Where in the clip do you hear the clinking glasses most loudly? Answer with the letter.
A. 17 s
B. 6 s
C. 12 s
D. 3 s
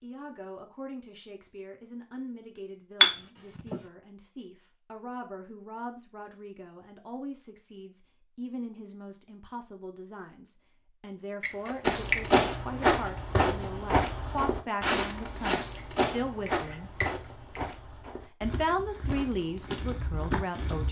D.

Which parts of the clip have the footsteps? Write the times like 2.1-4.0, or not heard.
11.8-20.8.